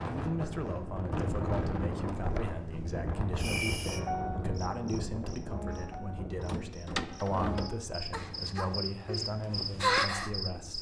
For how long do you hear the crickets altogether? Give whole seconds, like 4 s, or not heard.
7 s.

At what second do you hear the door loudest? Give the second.
7 s.